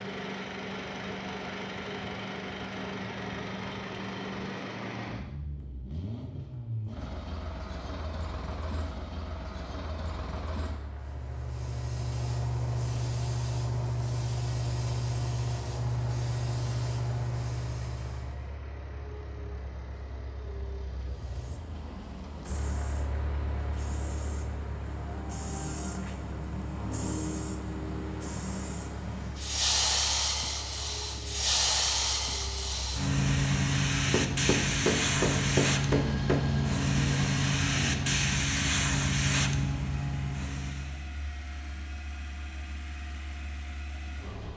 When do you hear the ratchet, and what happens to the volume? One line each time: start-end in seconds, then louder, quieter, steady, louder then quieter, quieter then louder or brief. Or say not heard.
not heard.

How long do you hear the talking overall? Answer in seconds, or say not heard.
not heard.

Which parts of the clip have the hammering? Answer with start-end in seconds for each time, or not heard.
34.1-36.5.